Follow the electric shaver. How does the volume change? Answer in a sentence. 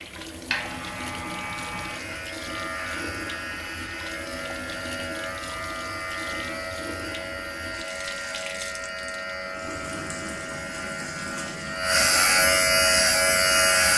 The volume of the electric shaver goes up.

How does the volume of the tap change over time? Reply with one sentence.
The volume of the tap stays about the same.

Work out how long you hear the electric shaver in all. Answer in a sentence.
The electric shaver can be heard for 14 seconds in total.